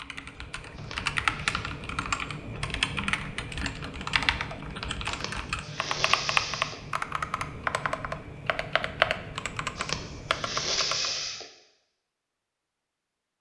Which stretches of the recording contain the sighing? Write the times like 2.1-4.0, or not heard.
0.8-1.6, 5.0-6.8, 9.8-11.5.